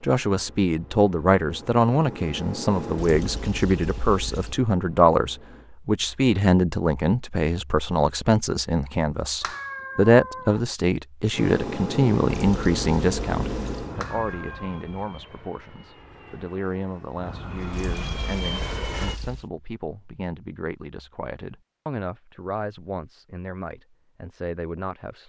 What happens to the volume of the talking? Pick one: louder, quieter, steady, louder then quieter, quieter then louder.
quieter.